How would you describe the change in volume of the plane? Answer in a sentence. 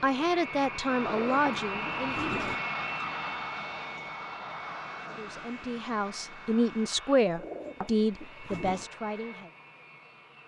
The loudness of the plane goes down.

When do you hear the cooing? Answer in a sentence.
You can hear the cooing from 1.0 to 2.6 s and from 7.3 to 8.9 s.